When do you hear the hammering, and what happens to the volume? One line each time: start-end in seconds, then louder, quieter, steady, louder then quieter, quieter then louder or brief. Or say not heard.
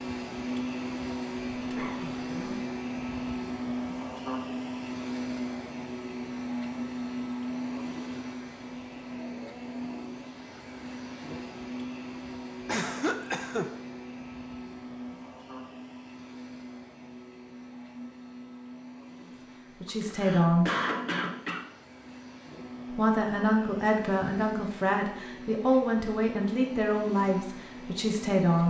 not heard.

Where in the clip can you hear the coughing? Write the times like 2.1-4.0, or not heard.
1.6-2.5, 12.7-13.7, 19.9-21.6.